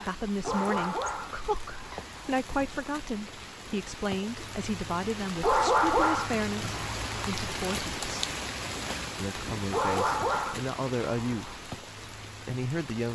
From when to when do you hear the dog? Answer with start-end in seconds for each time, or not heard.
0.4-2.3, 5.4-7.2, 9.7-11.6.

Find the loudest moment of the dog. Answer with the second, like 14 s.
6 s.